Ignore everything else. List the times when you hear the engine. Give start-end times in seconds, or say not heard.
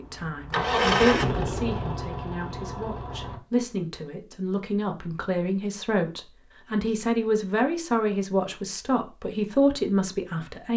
0.0-3.4.